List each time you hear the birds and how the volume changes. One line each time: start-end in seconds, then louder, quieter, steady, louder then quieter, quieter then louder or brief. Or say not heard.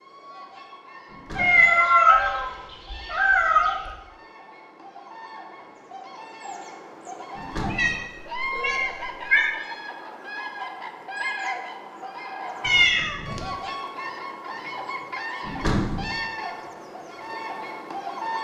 0.0-18.3 louder.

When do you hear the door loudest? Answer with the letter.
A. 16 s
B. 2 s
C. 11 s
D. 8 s
A.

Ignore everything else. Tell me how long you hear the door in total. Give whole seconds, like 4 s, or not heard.
2 s.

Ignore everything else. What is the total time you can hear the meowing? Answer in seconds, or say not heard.
5 s.